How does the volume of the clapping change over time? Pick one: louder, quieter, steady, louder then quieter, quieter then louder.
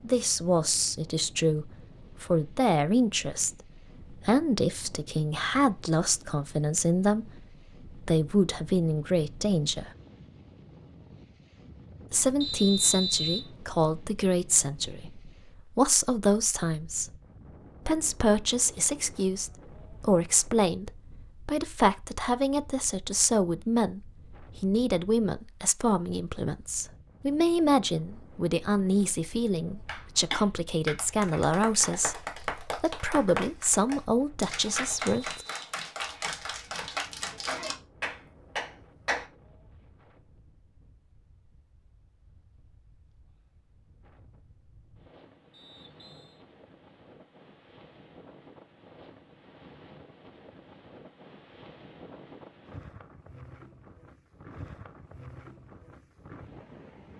steady.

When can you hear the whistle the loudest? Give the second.
13 s.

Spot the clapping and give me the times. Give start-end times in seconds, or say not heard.
29.9-39.2.